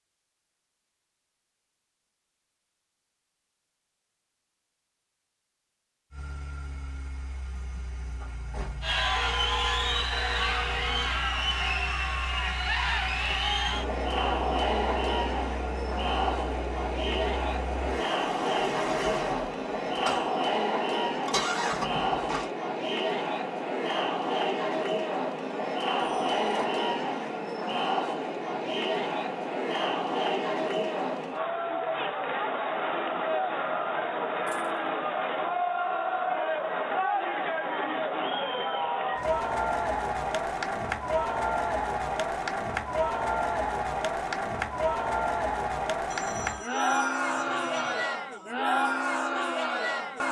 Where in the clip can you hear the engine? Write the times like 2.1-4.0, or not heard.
6.1-22.5.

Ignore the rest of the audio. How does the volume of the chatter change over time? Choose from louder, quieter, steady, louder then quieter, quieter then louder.
steady.